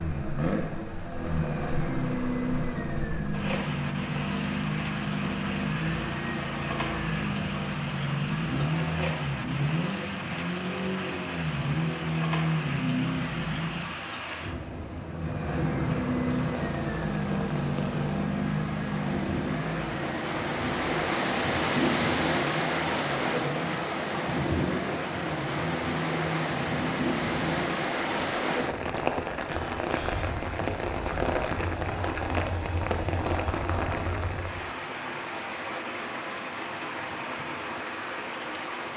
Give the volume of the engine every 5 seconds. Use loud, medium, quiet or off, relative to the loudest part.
loud, loud, loud, loud, medium, medium, medium, off.